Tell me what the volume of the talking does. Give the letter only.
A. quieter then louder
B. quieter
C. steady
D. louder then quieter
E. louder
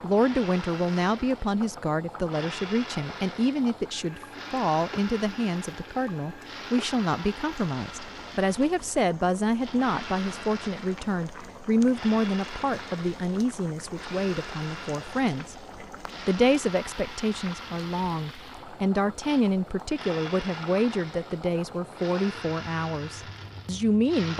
C.